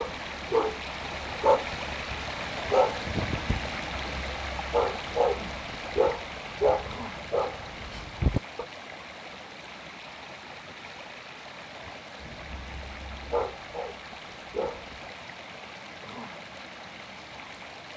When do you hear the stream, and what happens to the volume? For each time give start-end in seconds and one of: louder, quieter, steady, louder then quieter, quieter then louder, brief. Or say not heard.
0.0-17.9 quieter.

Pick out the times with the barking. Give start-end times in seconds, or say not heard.
0.0-8.7, 12.2-14.8.